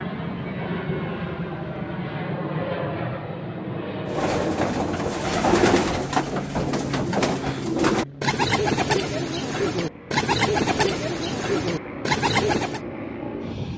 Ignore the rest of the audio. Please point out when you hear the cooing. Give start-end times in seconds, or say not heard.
4.0-12.8.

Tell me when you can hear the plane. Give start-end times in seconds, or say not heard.
0.0-13.7.